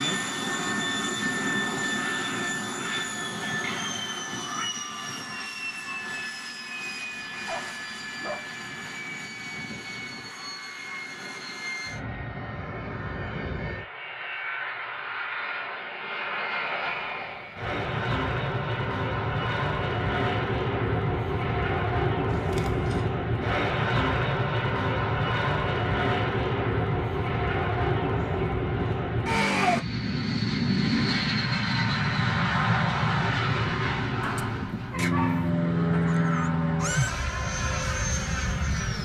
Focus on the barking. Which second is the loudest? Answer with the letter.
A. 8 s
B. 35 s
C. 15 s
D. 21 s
B.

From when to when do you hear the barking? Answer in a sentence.
The barking can be heard from 7.0 to 8.5 s and from 34.2 to 35.5 s.